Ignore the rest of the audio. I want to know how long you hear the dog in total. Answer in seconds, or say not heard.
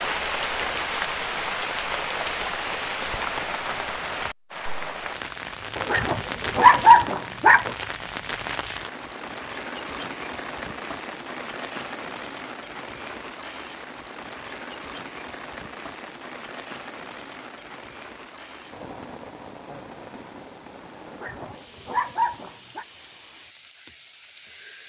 4 s.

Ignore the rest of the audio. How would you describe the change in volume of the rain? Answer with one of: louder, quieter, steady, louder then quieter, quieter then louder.
quieter.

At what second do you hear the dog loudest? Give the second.
7 s.